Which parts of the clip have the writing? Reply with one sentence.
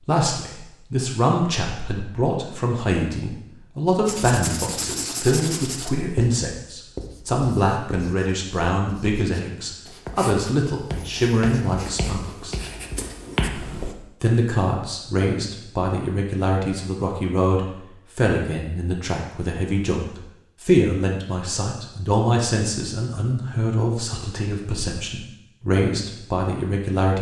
You can hear the writing from 4.0 to 13.9 s.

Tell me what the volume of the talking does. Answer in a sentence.
The volume of the talking stays about the same.